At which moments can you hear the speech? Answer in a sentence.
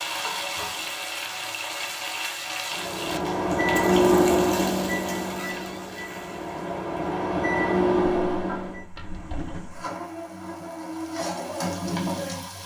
The speech can't be heard in this clip.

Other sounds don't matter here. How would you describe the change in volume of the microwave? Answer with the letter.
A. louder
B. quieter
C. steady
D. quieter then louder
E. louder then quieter
D.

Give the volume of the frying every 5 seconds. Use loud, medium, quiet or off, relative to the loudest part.
loud, medium, loud.